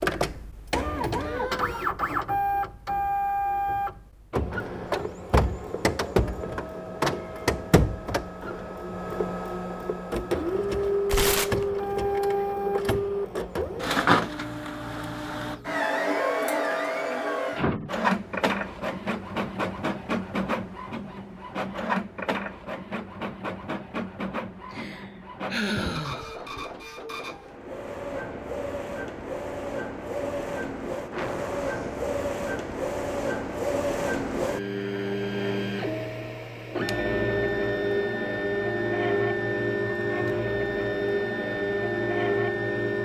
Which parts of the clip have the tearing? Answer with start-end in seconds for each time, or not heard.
11.1-11.7.